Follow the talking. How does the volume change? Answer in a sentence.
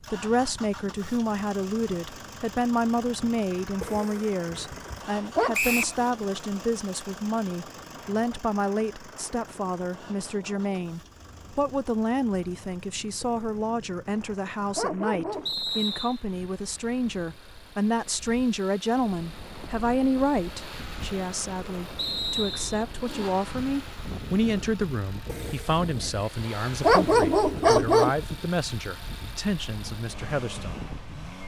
The loudness of the talking stays about the same.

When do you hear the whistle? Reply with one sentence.
You can hear the whistle from 5.5 to 6.0 s, from 15.4 to 16.2 s and from 21.9 to 22.9 s.